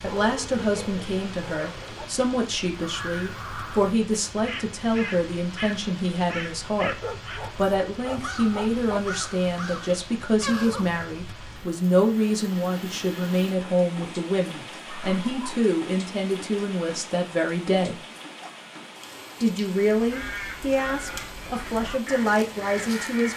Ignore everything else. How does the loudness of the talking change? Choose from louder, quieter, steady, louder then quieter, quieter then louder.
steady.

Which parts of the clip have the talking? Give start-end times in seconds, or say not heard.
0.0-7.0, 7.5-18.0, 19.4-23.3.